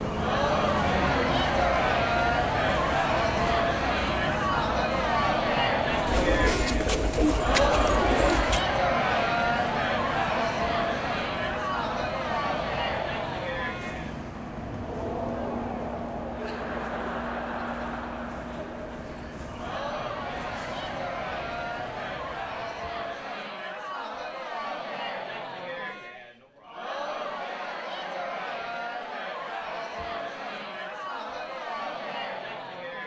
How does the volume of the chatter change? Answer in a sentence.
The loudness of the chatter goes down.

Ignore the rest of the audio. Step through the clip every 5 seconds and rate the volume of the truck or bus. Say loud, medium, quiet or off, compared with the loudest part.
loud, loud, medium, medium, medium, off, off.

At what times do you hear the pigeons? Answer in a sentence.
You can hear the pigeons from 6.0 to 8.7 s.